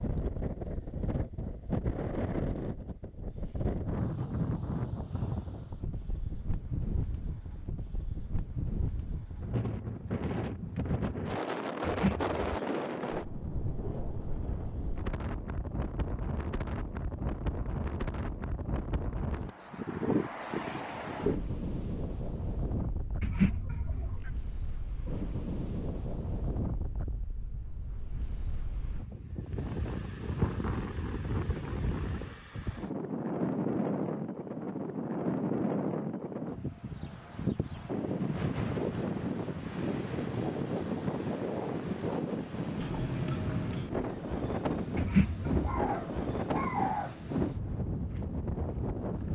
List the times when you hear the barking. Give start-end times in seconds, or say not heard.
45.6-47.2.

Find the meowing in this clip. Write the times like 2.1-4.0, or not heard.
11.8-12.6, 23.2-24.3, 45.0-45.9.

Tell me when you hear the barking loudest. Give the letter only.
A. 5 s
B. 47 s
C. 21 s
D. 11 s
B.